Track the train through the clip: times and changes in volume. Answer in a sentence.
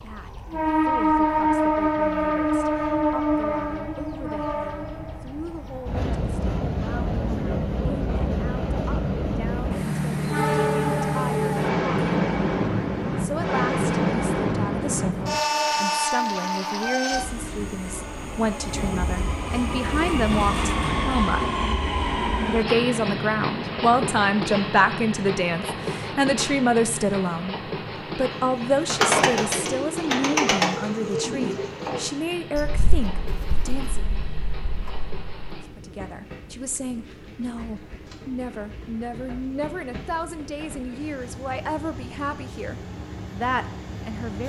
The train can be heard from 0.0 to 44.4 s, getting quieter.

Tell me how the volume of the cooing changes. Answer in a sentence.
The loudness of the cooing goes down.